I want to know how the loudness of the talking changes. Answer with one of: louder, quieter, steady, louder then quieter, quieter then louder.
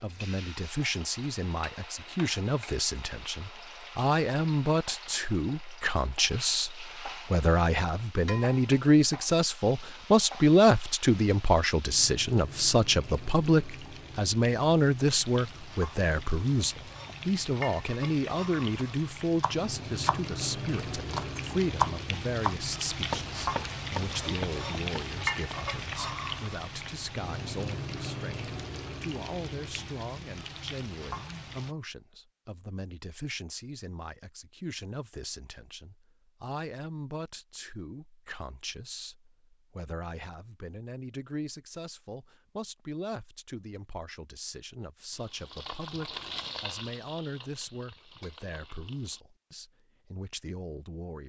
quieter.